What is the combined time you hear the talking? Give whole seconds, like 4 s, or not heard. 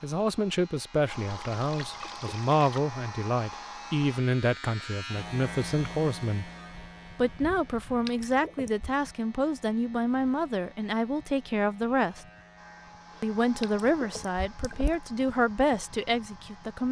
15 s.